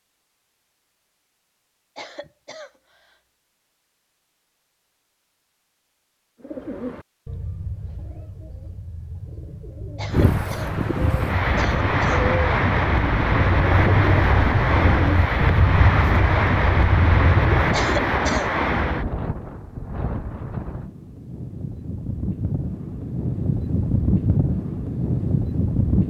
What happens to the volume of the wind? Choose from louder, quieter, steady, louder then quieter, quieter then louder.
quieter then louder.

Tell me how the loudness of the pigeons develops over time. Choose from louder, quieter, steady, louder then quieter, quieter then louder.
louder.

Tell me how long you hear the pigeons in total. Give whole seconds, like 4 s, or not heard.
12 s.